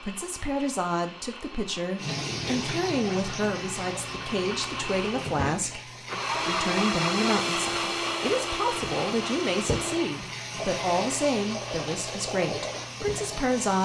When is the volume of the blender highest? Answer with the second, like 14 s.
7 s.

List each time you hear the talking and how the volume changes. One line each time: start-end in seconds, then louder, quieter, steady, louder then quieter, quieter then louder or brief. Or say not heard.
0.0-13.7 steady.